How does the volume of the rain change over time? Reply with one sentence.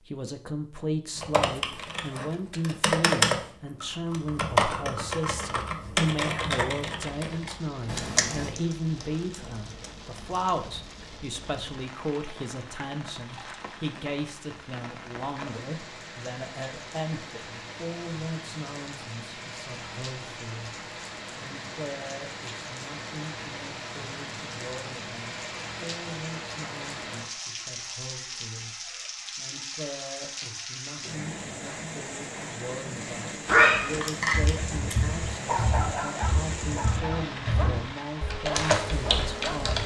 The loudness of the rain goes up.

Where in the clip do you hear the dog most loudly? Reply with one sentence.
The loudest moment of the dog is at 34 seconds.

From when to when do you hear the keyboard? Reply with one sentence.
You can hear the keyboard from 1.1 to 11.2 s and from 33.5 to 39.8 s.